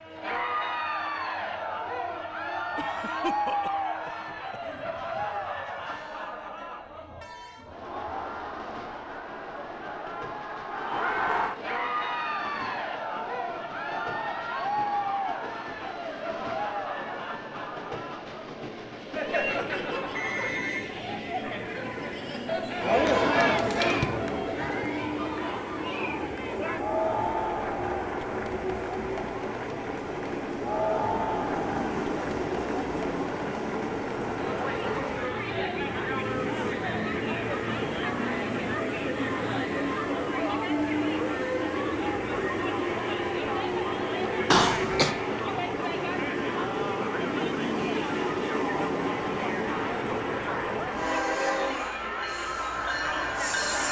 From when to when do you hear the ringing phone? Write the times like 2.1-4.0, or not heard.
20.1-21.1.